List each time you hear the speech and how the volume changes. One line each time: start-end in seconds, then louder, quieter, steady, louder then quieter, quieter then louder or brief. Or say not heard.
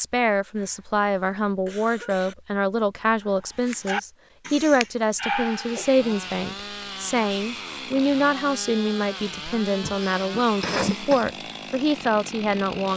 0.0-12.9 steady.